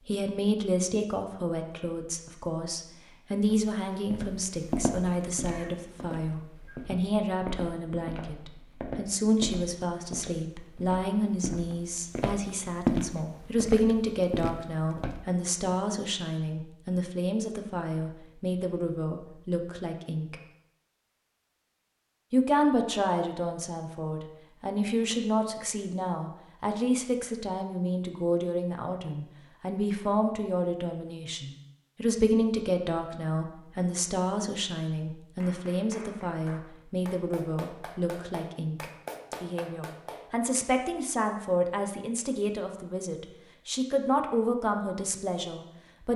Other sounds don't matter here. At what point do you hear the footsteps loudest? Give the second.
13 s.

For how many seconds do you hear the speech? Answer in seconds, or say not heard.
44 s.